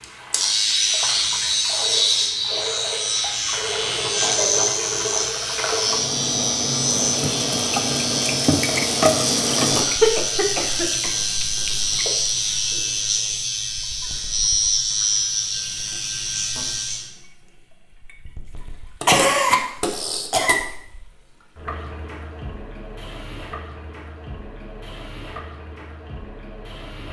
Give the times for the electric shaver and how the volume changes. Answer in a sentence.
The electric shaver can be heard from 0.0 to 17.1 s, at a steady volume.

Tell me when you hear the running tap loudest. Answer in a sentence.
The volume of the running tap peaks at 9 seconds.